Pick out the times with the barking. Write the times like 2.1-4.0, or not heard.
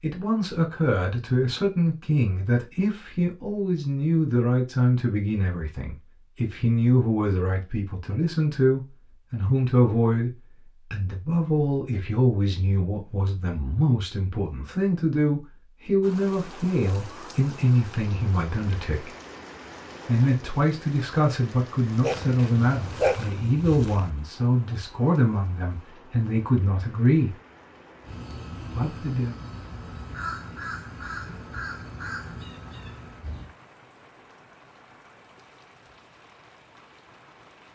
22.0-24.1.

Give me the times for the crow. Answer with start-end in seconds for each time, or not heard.
28.0-33.5.